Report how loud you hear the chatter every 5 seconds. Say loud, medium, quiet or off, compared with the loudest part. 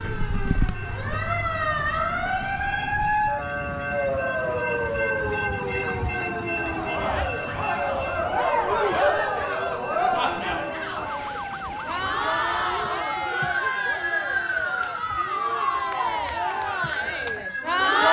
off, loud, loud, loud.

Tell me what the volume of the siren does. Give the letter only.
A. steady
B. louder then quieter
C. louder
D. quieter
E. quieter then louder
E.